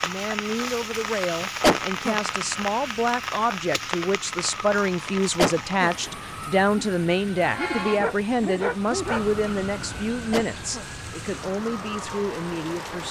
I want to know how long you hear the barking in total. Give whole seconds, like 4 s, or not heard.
3 s.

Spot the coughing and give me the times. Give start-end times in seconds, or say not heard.
1.6-2.1, 5.3-5.9, 10.3-10.8.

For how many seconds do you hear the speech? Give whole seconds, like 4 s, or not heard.
13 s.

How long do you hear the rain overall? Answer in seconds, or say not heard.
13 s.